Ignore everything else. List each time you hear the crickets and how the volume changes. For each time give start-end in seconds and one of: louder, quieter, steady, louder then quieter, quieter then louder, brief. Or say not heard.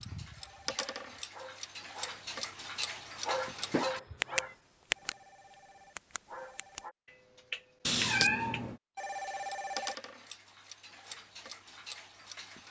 0.0-7.0 louder then quieter.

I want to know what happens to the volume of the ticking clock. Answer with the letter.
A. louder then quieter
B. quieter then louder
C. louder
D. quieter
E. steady
A.